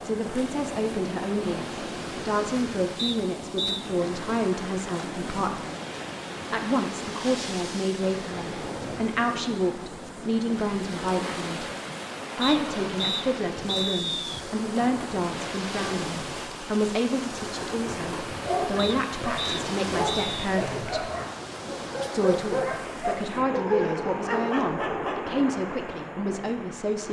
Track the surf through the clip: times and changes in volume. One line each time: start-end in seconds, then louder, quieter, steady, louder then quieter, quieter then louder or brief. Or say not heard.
0.0-27.0 steady.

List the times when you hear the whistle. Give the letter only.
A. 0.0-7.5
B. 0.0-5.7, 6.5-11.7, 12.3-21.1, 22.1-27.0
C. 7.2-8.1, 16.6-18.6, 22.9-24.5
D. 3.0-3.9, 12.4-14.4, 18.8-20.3
D.